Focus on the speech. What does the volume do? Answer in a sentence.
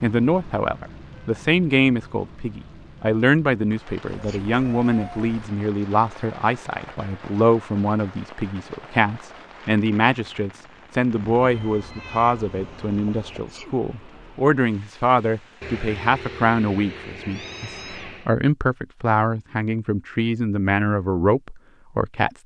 The loudness of the speech stays about the same.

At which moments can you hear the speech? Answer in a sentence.
The speech can be heard from 0.0 to 22.4 s.